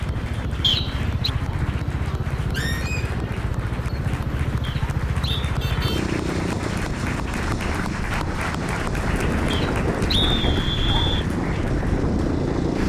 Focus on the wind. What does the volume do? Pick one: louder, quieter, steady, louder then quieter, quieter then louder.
louder.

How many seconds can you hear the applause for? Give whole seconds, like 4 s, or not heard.
13 s.